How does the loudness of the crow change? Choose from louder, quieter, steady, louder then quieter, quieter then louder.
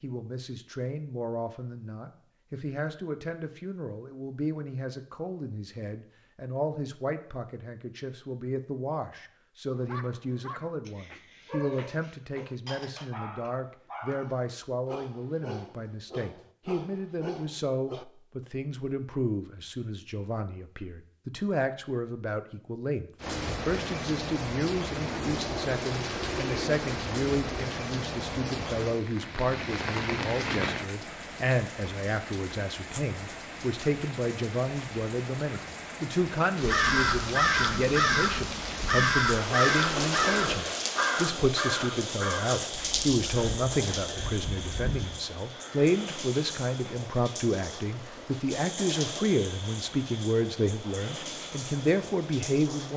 quieter.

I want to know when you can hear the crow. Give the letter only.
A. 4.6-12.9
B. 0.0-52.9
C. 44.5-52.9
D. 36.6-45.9
D.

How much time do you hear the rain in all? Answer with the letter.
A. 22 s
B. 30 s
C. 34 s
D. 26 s
B.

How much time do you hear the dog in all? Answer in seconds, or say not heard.
8 s.